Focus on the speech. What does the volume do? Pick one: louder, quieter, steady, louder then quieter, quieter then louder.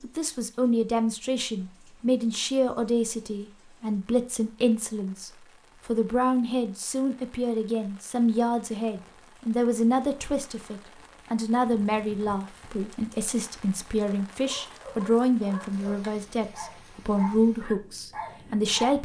steady.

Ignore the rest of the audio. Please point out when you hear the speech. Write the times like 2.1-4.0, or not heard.
0.0-19.0.